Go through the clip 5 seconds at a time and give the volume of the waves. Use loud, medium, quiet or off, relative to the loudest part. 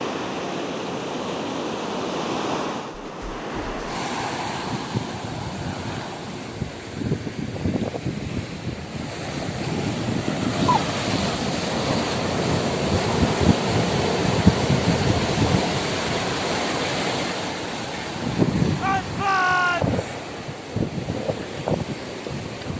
medium, medium, loud, loud, medium.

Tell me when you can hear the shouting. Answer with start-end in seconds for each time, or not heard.
18.8-20.0.